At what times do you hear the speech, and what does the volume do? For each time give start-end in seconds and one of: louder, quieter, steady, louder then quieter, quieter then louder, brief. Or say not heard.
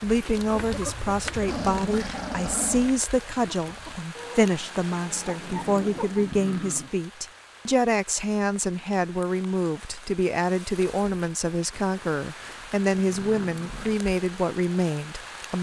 0.0-15.5 steady.